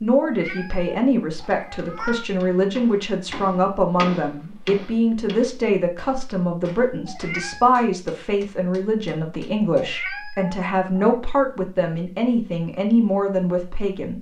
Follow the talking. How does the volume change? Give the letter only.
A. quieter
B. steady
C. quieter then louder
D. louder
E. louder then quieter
B.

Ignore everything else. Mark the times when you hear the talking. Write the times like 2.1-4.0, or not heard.
0.0-14.1.